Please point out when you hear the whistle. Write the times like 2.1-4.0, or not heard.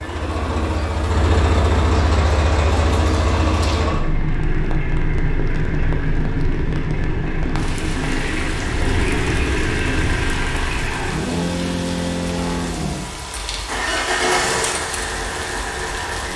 not heard.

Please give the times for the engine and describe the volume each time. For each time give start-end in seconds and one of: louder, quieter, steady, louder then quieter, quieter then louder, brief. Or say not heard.
0.0-16.3 steady.